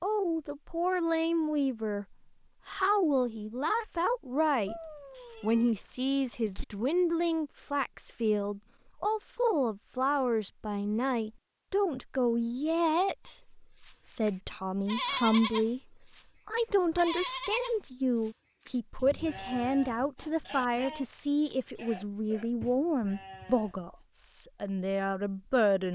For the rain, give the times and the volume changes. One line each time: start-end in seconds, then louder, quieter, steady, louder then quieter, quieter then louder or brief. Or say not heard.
not heard.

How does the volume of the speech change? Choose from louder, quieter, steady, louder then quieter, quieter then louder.
steady.